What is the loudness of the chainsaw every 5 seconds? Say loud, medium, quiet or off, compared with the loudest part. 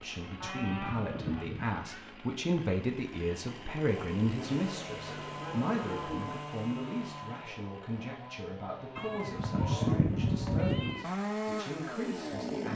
medium, medium, loud.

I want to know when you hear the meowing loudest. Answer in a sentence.
The volume of the meowing peaks at 10 seconds.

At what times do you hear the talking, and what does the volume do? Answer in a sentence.
You can hear the talking from 0.0 to 12.7 s, getting quieter.